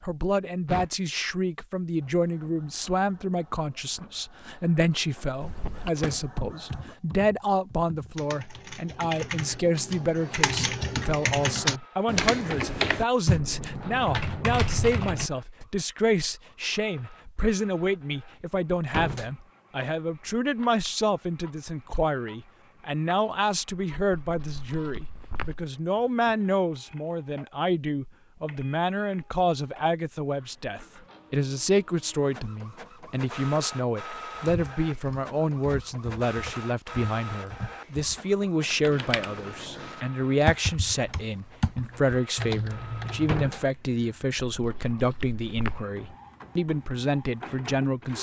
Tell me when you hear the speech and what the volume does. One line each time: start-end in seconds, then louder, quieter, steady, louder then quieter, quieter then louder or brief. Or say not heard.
0.0-48.1 steady.